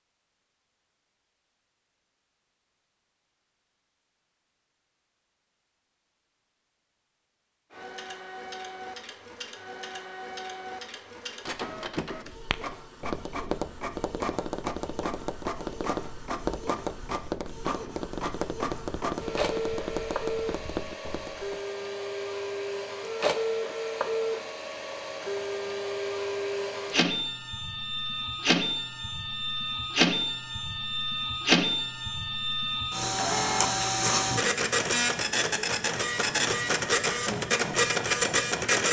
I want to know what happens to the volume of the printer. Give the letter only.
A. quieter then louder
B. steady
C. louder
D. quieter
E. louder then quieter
C.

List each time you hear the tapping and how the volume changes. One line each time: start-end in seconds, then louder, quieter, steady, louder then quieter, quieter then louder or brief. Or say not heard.
11.7-21.6 steady.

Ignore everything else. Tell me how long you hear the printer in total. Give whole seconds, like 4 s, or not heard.
31 s.